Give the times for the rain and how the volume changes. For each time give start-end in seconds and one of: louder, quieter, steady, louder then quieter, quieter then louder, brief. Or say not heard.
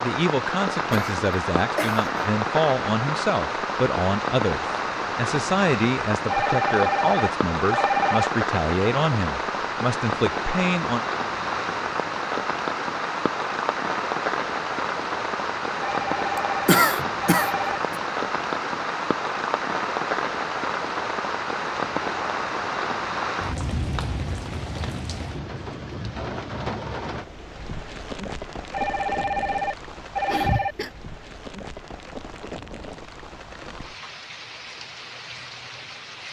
0.0-36.2 quieter.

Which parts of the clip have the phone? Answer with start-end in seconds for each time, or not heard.
6.3-8.3, 15.8-17.8, 28.7-30.8.